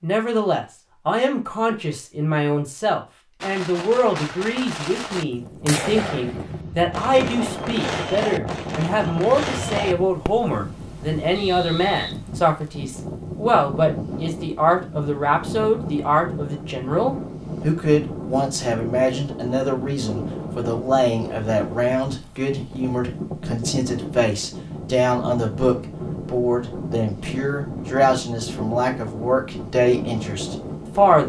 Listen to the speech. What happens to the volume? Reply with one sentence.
The volume of the speech stays about the same.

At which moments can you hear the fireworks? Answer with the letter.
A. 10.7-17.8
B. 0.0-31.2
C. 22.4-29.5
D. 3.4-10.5
D.